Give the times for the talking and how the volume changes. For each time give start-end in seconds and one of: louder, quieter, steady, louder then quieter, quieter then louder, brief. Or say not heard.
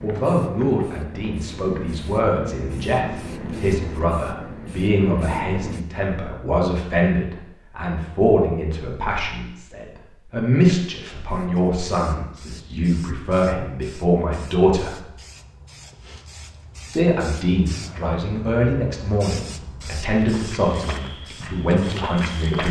0.0-15.0 steady
16.9-22.6 steady.